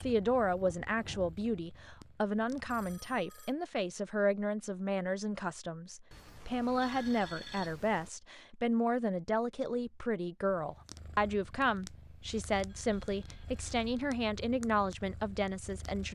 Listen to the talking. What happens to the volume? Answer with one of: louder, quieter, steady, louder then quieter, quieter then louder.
steady.